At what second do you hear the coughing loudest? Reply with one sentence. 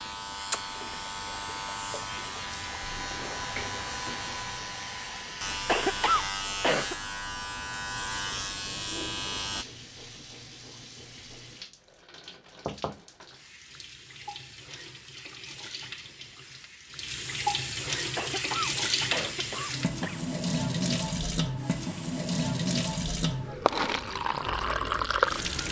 The loudest moment of the coughing is at 6 seconds.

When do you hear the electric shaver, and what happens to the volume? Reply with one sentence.
The electric shaver can be heard from 0.0 to 9.7 s, at a steady volume.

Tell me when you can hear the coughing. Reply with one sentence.
The coughing can be heard from 5.7 to 7.0 s and from 18.1 to 20.2 s.